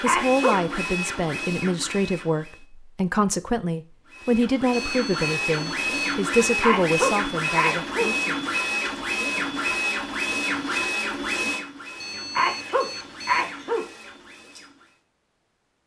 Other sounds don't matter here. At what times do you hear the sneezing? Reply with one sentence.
You can hear the sneezing from 0.1 to 0.6 s, from 6.6 to 8.1 s and from 12.3 to 13.8 s.